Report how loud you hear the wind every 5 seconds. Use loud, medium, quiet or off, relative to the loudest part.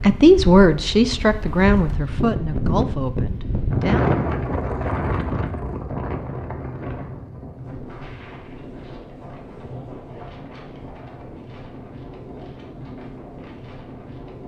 loud, medium, quiet.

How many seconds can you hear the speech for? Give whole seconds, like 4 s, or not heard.
4 s.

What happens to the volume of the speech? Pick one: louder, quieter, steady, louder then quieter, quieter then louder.
quieter.